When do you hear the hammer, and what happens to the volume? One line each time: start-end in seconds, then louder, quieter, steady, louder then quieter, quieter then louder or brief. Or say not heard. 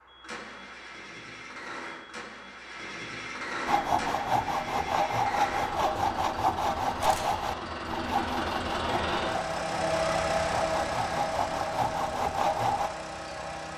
not heard.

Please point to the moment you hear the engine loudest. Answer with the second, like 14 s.
10 s.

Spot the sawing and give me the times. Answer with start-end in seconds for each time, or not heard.
3.6-12.9.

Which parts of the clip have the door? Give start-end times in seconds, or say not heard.
not heard.